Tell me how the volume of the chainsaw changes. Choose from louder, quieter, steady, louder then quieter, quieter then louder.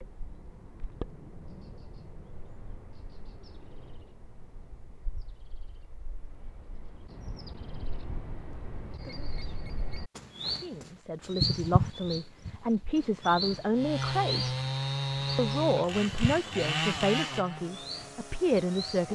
quieter.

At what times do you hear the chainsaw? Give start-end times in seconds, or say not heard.
13.7-19.1.